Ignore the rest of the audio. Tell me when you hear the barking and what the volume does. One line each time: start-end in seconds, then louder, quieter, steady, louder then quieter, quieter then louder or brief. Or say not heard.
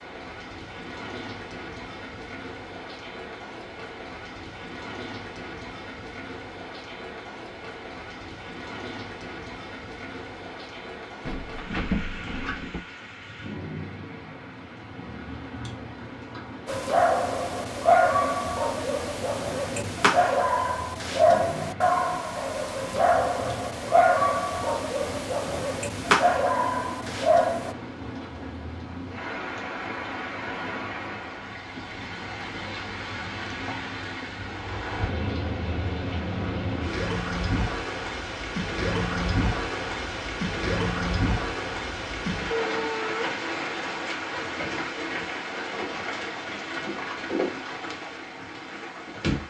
16.6-27.8 steady.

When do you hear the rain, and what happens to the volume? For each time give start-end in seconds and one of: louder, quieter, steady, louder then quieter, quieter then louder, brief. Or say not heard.
0.0-49.4 louder.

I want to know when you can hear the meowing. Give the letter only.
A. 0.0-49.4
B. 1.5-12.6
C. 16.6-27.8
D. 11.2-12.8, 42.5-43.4
D.